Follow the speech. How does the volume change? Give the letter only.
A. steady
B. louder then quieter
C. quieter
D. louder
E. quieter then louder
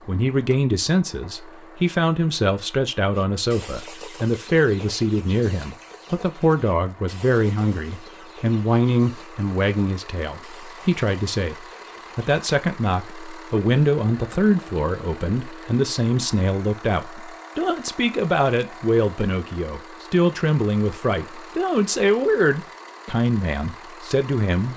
A.